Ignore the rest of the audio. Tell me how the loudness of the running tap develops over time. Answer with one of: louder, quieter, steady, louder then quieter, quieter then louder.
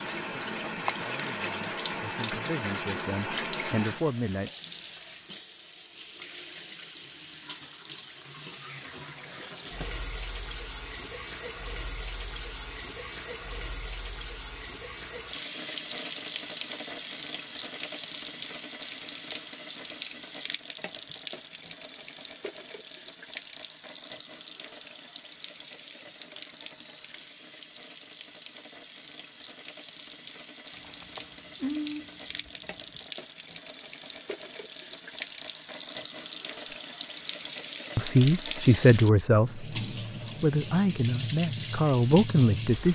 quieter then louder.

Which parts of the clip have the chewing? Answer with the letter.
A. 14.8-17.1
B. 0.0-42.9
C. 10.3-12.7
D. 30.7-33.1
D.